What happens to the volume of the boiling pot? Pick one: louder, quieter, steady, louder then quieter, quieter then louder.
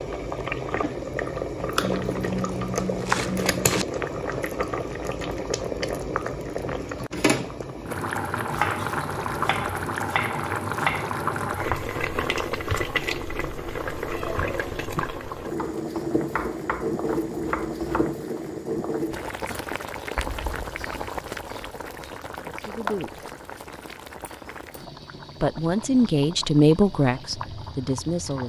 quieter.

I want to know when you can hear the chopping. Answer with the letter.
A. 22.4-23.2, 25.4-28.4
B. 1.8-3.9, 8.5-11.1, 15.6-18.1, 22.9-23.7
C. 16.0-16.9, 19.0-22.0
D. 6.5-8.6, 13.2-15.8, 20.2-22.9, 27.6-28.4
B.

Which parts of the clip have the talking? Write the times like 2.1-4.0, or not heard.
22.4-23.2, 25.4-28.4.